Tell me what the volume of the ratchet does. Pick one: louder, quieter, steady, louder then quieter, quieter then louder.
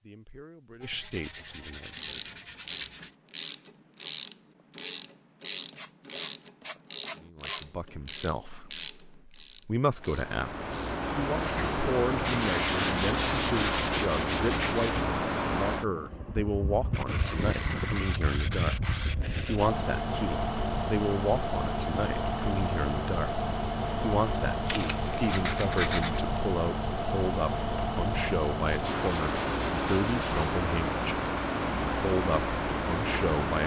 quieter.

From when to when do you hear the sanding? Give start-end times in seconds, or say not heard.
0.8-3.1, 5.7-7.7, 12.2-15.1, 16.9-19.7, 24.6-26.2, 28.6-30.6.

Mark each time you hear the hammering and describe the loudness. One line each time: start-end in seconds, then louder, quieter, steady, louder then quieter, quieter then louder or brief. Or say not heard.
not heard.